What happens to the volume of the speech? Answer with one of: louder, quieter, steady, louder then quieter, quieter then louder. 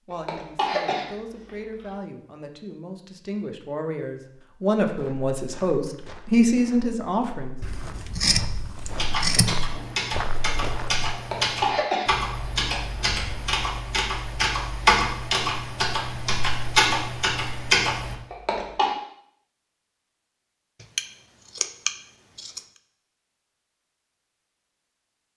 louder.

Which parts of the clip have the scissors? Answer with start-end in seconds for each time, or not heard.
7.6-9.6, 20.8-22.6.